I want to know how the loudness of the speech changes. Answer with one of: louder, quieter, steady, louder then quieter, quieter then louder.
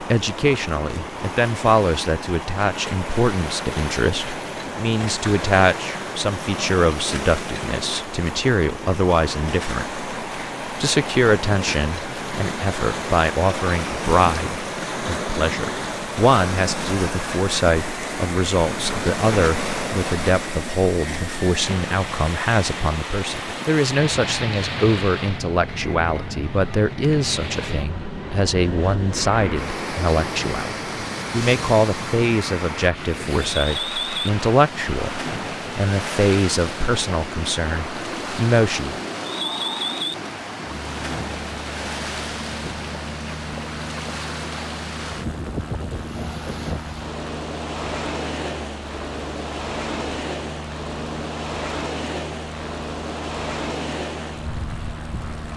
steady.